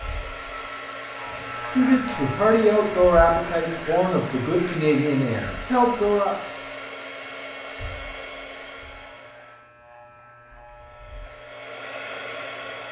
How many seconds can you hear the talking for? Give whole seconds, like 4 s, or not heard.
5 s.